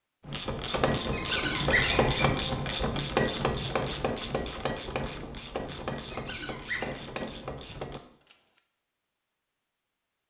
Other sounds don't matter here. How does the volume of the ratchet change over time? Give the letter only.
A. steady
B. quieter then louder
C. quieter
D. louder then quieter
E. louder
C.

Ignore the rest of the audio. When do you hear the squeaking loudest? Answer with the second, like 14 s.
2 s.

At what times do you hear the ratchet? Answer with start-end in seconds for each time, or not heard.
0.2-8.6.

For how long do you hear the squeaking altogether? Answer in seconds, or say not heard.
2 s.